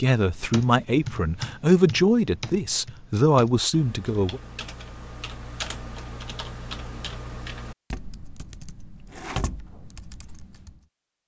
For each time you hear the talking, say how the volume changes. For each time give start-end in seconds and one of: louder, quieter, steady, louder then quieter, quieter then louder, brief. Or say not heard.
0.0-4.4 steady.